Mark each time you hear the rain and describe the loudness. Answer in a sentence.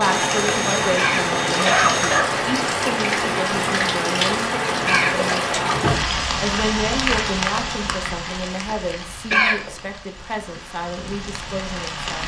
The rain can be heard from 0.0 to 12.2 s, getting quieter.